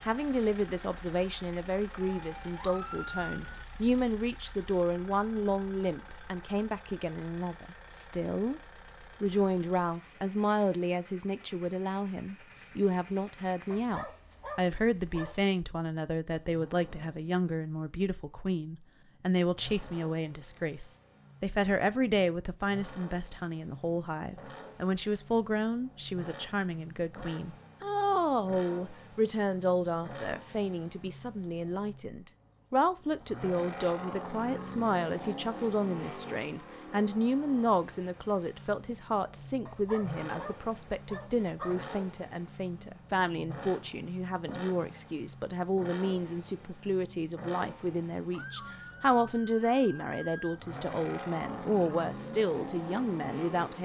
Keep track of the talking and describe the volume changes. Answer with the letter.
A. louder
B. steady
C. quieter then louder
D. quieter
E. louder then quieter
B.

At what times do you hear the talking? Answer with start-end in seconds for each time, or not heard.
0.0-8.6, 9.2-53.8.